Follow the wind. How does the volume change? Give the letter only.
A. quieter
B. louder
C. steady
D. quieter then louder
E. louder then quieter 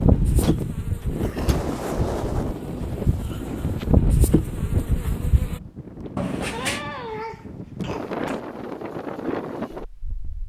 D.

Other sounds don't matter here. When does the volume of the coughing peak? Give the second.
7 s.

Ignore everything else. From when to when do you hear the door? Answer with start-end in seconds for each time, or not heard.
0.4-1.8, 6.2-6.8.